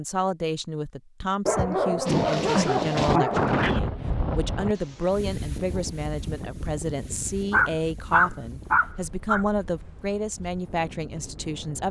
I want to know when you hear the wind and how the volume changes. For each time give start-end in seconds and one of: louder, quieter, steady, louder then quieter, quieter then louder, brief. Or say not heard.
2.0-11.8 quieter.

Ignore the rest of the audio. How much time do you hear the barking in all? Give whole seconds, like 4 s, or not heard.
4 s.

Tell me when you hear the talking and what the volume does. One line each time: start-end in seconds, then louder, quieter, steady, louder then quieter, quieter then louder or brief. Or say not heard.
0.0-11.8 steady.